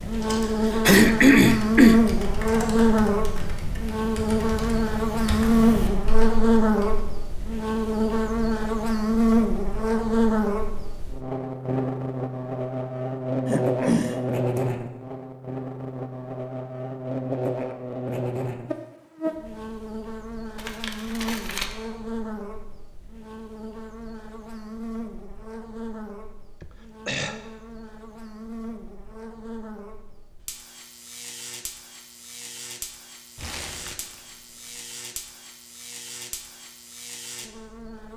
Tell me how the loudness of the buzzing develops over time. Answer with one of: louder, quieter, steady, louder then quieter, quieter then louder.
quieter.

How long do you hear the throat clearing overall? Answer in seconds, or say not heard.
3 s.